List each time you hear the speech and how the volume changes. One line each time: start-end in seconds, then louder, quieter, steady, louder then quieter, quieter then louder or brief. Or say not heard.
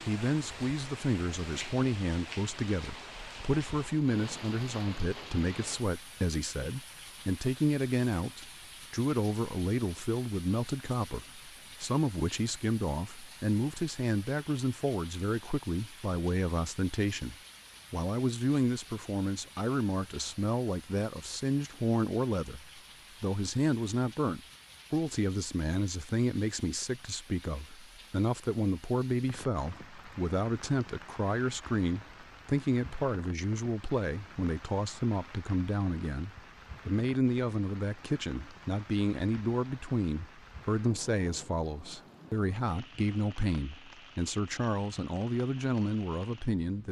0.1-46.8 steady.